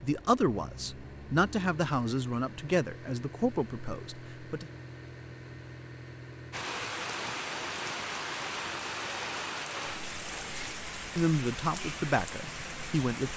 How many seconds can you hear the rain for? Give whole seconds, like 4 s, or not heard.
7 s.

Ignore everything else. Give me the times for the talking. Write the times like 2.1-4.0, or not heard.
0.0-4.7, 11.2-13.3.